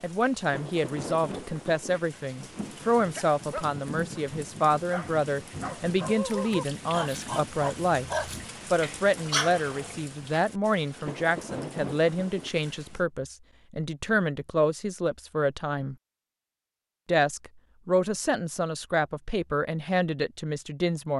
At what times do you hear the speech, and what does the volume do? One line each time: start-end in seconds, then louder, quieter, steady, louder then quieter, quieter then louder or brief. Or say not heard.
0.0-8.1 steady
8.7-15.9 steady
17.1-21.1 quieter.